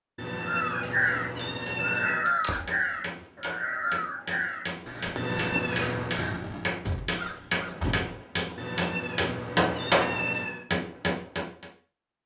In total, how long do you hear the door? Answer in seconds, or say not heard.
2 s.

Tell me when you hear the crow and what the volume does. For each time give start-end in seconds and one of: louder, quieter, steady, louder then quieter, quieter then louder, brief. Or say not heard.
0.3-7.8 quieter.